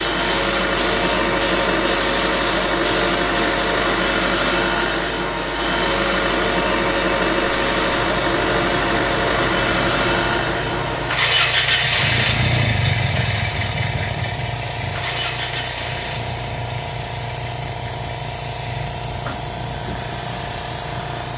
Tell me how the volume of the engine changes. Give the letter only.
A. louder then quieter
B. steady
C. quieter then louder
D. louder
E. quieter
E.